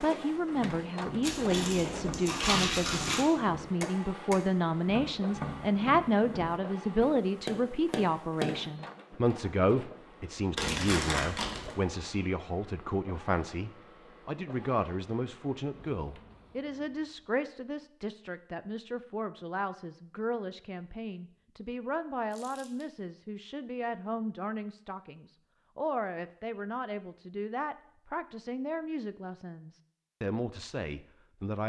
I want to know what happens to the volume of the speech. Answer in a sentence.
The loudness of the speech goes down.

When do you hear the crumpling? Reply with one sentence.
You can hear the crumpling from 1.2 to 3.2 s, from 10.6 to 11.8 s and from 22.3 to 22.9 s.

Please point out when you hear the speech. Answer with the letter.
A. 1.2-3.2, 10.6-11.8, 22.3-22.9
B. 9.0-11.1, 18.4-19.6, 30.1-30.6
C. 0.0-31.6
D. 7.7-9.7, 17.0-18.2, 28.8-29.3
C.